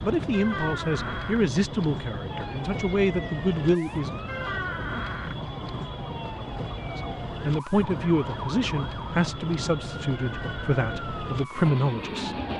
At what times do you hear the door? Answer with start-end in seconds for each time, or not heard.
0.3-1.4, 4.2-5.3, 10.1-10.8.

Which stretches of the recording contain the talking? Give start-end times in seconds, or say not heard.
0.0-4.1, 7.0-12.3.